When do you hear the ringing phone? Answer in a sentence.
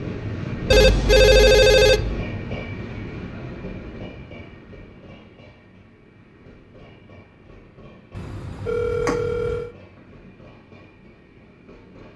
You can hear the ringing phone from 0.7 to 2.3 s and from 8.1 to 9.7 s.